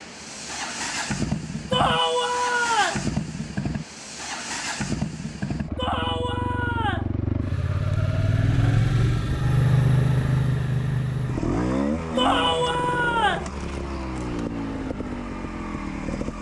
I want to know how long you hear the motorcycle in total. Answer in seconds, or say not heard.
16 s.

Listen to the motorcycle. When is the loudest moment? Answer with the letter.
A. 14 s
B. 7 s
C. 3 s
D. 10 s
D.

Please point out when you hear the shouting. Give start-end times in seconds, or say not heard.
1.7-3.0, 5.8-7.1, 12.2-13.5.